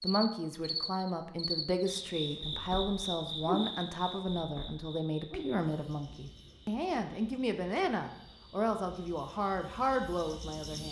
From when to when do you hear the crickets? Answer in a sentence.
You can hear the crickets from 0.0 to 10.8 s.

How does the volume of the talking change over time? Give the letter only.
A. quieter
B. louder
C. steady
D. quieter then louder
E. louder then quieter
C.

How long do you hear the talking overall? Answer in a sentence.
You can hear the talking for 11 seconds altogether.